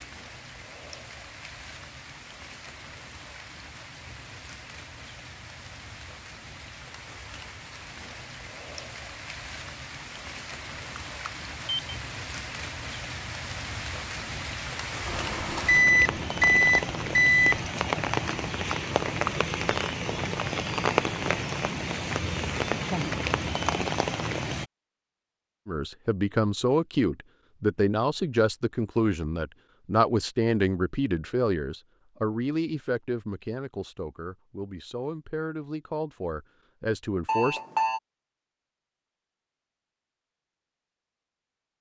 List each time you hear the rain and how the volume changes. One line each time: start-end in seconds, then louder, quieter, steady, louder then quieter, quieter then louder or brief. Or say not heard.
0.0-24.6 louder.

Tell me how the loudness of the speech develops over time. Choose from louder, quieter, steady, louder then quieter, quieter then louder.
quieter.